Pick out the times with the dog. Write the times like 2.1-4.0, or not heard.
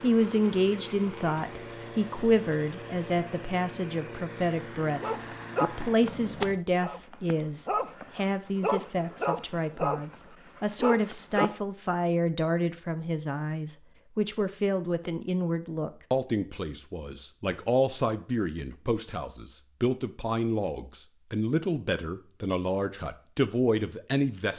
5.0-11.5.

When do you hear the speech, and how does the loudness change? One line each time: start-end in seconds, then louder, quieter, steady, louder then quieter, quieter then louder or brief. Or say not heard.
0.0-24.5 steady.